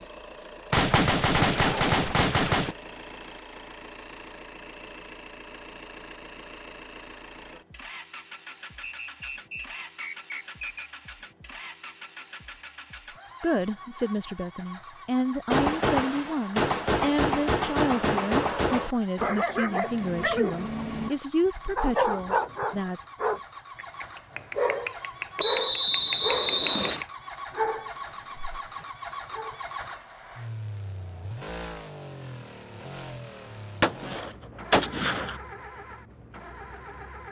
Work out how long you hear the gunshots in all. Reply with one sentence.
The gunshots can be heard for 7 seconds in total.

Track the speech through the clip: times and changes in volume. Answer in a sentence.
The speech can be heard from 13.4 to 23.1 s, at a steady volume.